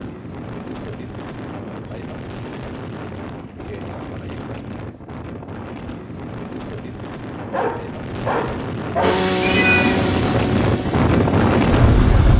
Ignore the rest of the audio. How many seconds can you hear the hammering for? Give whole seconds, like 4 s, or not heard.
not heard.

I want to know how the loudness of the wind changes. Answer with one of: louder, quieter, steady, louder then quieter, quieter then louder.
louder.